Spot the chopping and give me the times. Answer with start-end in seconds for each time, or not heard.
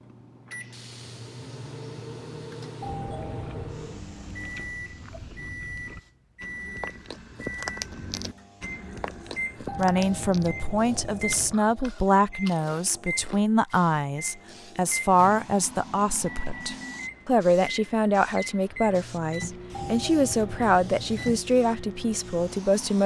not heard.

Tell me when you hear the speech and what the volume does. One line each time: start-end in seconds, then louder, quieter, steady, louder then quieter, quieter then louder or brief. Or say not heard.
9.8-23.0 steady.